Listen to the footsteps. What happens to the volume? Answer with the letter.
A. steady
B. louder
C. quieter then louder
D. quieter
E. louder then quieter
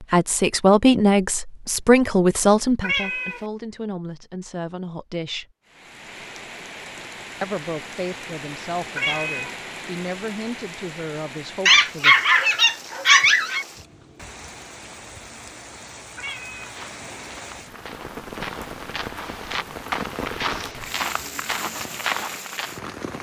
B.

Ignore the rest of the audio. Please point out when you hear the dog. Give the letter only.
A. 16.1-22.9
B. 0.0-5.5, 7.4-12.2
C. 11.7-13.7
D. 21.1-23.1
C.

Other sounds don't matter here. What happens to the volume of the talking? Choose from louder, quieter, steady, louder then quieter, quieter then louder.
quieter.